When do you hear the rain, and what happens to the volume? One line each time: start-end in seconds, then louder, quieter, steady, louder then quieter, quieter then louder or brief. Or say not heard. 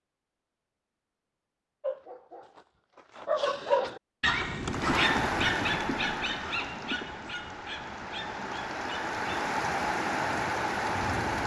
4.7-11.4 quieter then louder.